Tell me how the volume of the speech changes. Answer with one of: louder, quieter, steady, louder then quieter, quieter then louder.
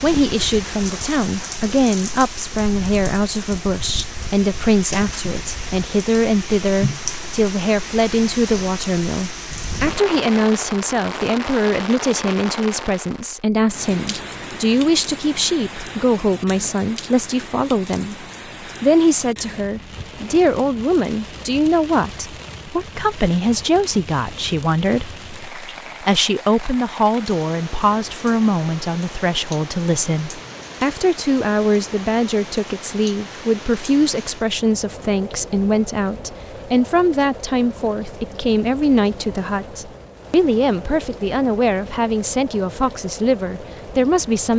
steady.